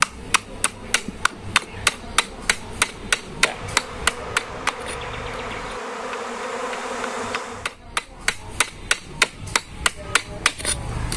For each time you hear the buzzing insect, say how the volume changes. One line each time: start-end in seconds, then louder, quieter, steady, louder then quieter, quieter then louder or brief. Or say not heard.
0.0-7.8 louder.